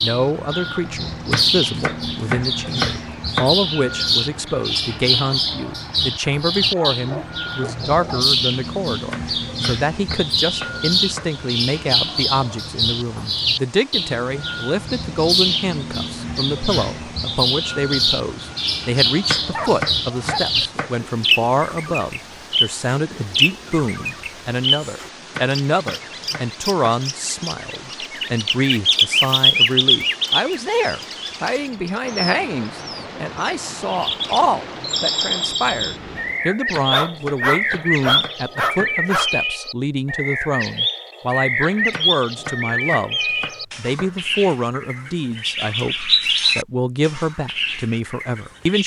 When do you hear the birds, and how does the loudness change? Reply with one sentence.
You can hear the birds from 0.0 to 48.8 s, at a steady volume.